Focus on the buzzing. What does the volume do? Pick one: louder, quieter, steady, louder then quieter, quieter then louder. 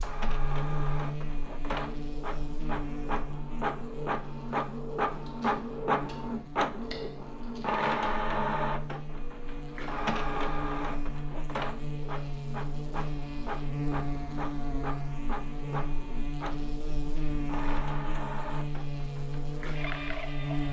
quieter then louder.